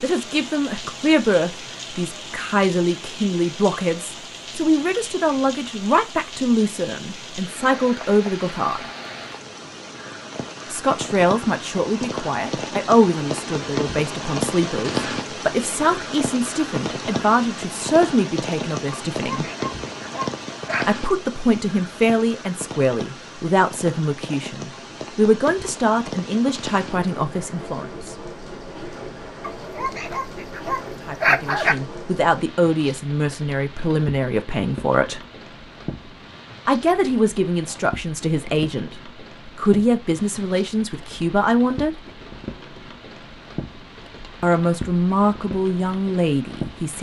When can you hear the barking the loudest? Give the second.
31 s.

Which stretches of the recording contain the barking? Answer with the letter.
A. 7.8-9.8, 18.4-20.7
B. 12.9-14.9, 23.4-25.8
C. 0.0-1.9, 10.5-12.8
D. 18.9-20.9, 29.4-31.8
D.